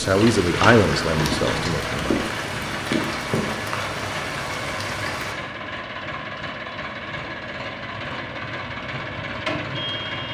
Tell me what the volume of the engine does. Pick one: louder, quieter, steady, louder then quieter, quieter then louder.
steady.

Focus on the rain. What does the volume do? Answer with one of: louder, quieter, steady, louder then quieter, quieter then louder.
steady.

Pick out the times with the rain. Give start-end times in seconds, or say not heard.
0.0-5.3.